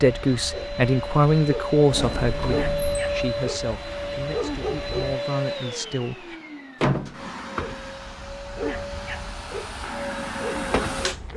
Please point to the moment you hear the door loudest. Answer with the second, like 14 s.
7 s.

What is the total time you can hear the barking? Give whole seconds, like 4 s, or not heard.
9 s.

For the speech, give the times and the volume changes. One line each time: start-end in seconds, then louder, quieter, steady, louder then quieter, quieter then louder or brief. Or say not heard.
0.0-6.3 quieter then louder.